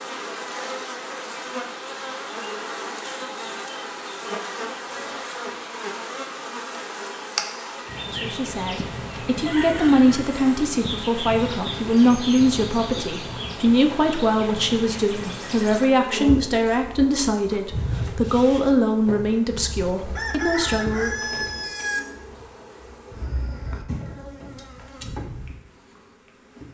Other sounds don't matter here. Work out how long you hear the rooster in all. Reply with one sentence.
The rooster can be heard for 3 seconds in total.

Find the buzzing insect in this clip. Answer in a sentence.
The buzzing insect can be heard from 0.0 to 26.7 s.